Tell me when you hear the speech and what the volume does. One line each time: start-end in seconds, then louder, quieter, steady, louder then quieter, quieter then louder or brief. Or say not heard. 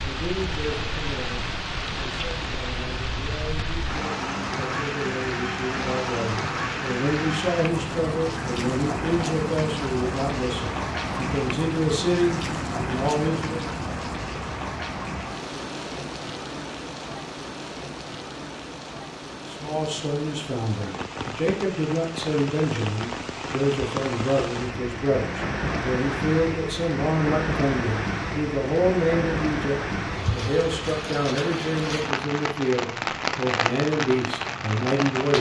0.0-13.7 louder
19.4-35.3 steady.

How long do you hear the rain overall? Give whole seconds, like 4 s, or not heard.
35 s.